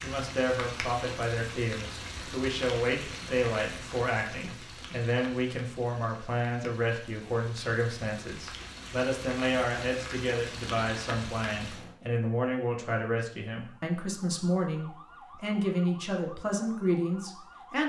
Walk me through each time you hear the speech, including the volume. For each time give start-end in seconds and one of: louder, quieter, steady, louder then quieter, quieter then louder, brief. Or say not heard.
0.0-17.8 steady.